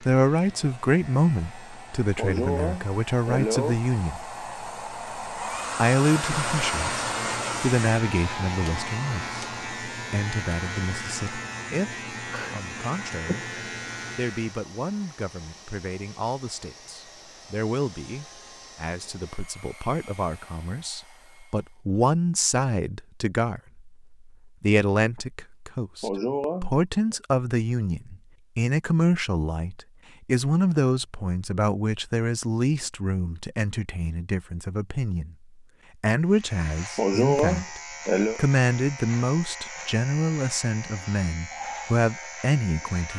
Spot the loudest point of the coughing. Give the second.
37 s.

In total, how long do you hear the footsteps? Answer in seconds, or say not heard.
not heard.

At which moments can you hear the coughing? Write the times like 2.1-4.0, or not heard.
2.1-3.8, 26.0-27.1, 37.0-38.4.